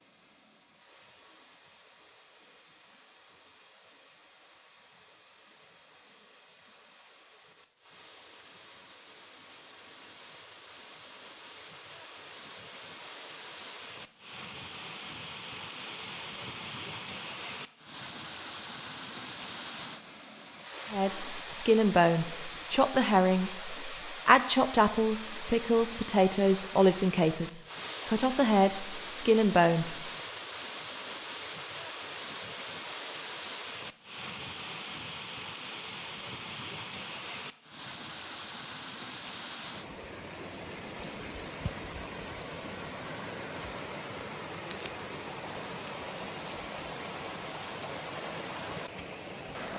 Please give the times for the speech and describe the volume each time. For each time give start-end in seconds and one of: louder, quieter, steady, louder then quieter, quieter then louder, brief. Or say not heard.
20.9-30.1 steady.